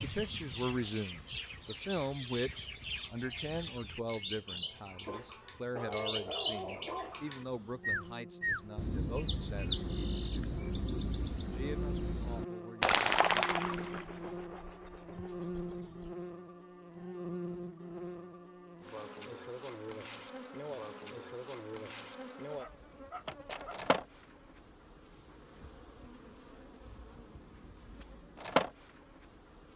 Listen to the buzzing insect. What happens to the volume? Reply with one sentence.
The loudness of the buzzing insect goes up.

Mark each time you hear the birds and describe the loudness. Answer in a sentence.
The birds can be heard from 0.0 to 16.1 s, getting louder.